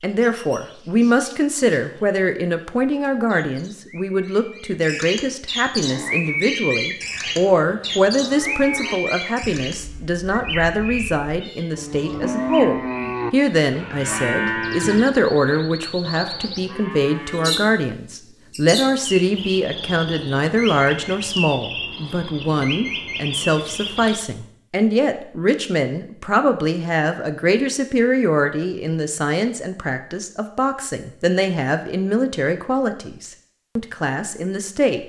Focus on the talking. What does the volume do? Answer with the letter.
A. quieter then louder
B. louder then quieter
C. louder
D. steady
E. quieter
D.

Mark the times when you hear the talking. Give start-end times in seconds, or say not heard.
0.0-35.0.